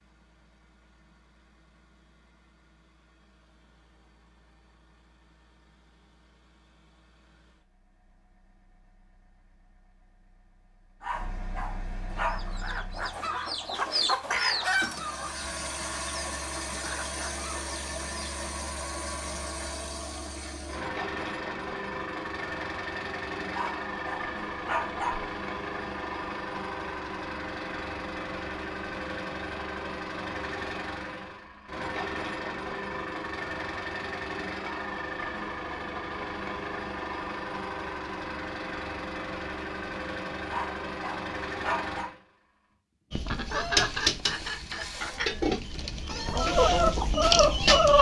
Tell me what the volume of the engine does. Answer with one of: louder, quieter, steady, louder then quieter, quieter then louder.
louder.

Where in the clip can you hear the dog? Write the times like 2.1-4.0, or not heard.
11.0-12.4, 23.5-25.4, 40.5-42.1.